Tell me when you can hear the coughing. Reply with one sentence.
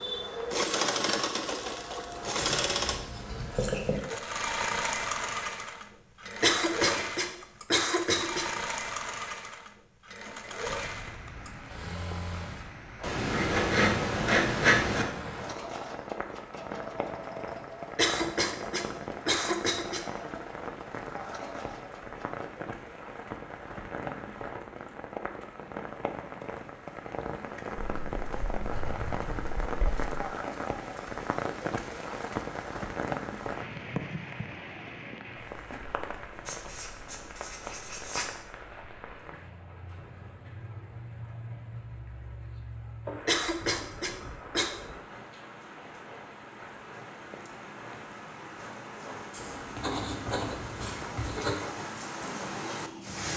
The coughing can be heard from 6.4 to 8.4 s, from 17.9 to 20.1 s and from 43.2 to 44.7 s.